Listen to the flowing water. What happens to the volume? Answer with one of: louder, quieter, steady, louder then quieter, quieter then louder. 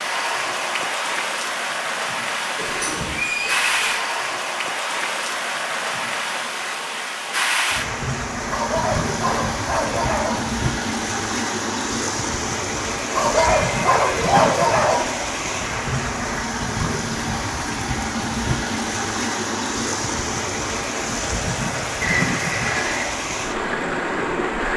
steady.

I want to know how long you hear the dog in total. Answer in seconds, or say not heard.
4 s.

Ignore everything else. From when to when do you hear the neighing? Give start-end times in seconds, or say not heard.
2.5-4.0, 13.3-14.6, 22.0-23.1.